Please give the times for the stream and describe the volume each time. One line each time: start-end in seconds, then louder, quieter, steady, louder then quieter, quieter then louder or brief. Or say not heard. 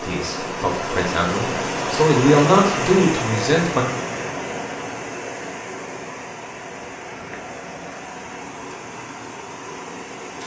0.0-10.4 quieter.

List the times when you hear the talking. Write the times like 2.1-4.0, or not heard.
0.0-3.9.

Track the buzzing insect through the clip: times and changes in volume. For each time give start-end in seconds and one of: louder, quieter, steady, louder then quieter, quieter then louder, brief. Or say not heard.
not heard.